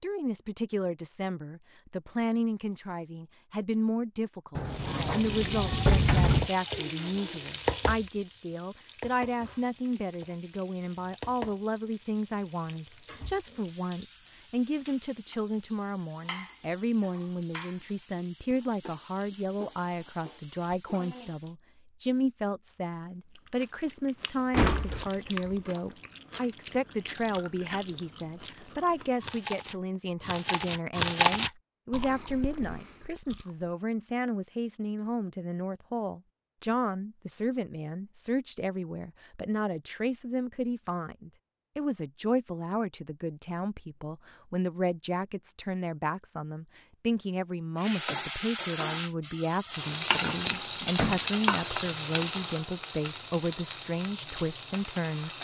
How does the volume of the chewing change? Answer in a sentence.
The loudness of the chewing goes up, then down.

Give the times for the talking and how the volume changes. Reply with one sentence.
You can hear the talking from 0.0 to 55.4 s, at a steady volume.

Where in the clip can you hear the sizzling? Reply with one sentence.
You can hear the sizzling from 4.7 to 21.6 s and from 47.8 to 55.4 s.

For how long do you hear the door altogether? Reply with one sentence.
The door can be heard for 4 seconds in total.